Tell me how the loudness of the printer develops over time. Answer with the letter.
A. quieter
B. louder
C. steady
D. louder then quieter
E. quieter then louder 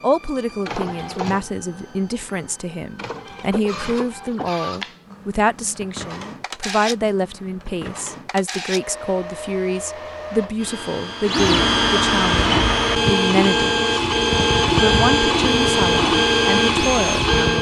B.